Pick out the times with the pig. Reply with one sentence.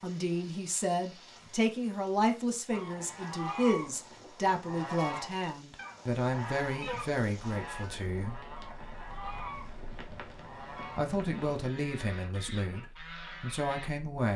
The pig can't be heard in this clip.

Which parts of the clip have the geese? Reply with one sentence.
The geese can be heard from 2.7 to 13.9 s.